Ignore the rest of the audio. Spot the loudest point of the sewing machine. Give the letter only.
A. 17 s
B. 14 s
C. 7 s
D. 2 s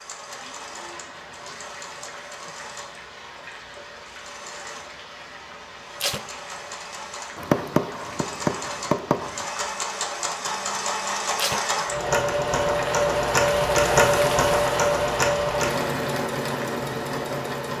B.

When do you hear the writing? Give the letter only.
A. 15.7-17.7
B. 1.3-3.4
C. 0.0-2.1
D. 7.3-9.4
D.